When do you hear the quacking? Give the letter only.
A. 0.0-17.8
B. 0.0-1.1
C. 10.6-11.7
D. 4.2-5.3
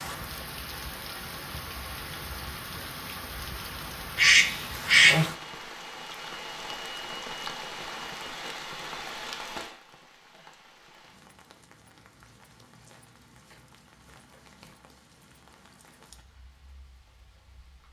D.